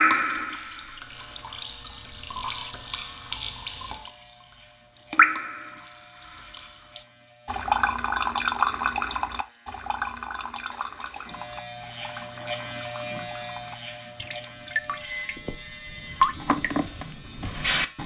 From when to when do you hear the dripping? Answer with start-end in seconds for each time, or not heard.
0.0-4.1, 5.1-18.0.